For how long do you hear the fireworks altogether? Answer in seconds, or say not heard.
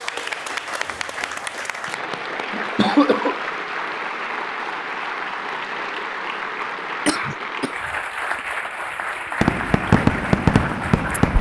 2 s.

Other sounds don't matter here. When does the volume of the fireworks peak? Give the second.
10 s.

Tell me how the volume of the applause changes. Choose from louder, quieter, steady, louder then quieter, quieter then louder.
steady.